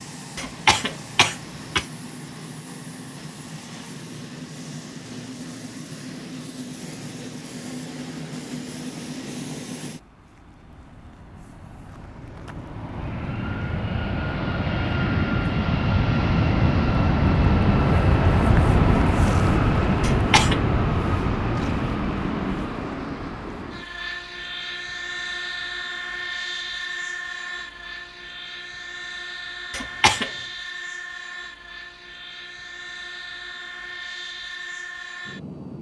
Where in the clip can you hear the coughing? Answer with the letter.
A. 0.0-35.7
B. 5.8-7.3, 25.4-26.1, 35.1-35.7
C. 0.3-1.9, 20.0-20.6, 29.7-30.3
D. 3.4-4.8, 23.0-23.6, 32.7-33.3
C.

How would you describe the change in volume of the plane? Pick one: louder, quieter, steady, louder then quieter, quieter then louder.
louder then quieter.